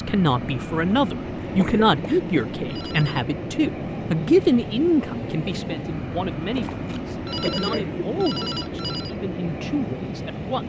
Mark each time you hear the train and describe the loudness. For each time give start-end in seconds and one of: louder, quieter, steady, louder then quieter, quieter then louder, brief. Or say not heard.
0.0-10.6 steady.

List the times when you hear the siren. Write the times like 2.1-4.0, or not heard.
not heard.